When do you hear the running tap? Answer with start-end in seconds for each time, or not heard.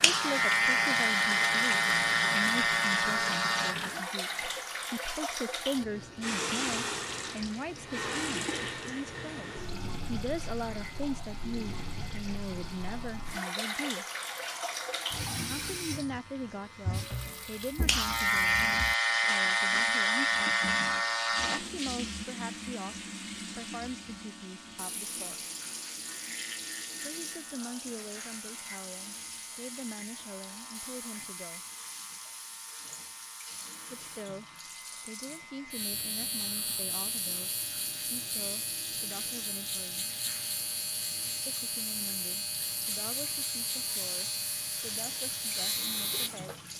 0.0-46.7.